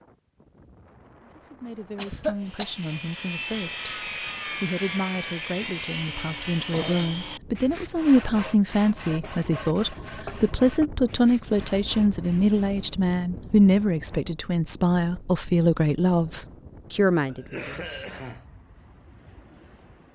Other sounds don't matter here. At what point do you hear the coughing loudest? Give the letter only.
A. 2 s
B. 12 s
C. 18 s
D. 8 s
A.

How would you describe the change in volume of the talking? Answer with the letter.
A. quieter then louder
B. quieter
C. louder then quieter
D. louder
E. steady
D.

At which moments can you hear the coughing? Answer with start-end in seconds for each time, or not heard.
1.9-2.8, 6.7-7.2, 17.2-18.4.